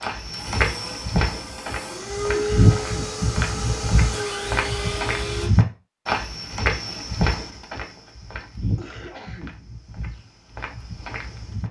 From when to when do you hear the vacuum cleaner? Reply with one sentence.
You can hear the vacuum cleaner from 0.0 to 5.5 s.